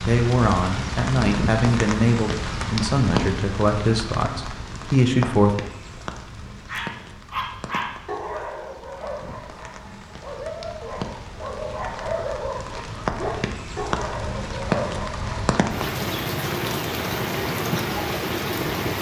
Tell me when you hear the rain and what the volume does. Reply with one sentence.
The rain can be heard from 0.0 to 18.9 s, getting quieter then louder.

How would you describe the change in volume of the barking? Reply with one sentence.
The loudness of the barking goes down, then up.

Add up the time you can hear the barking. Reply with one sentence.
You can hear the barking for 9 seconds altogether.